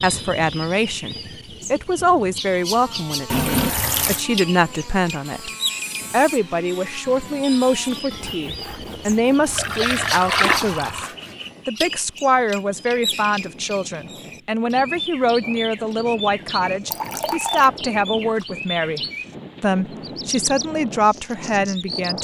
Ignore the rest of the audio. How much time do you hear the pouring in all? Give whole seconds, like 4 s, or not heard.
3 s.